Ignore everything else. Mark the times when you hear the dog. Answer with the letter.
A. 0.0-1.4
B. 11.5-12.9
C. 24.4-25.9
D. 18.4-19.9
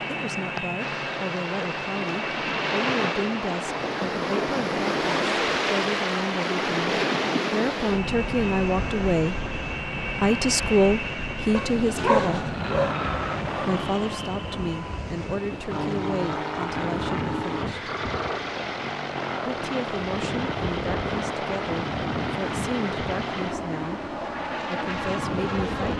B.